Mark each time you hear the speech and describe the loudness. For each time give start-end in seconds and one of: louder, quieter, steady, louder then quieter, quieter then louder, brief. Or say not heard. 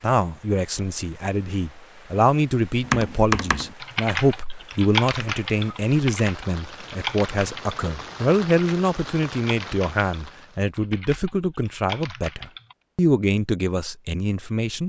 0.0-14.8 steady.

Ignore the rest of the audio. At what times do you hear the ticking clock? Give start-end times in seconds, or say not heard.
not heard.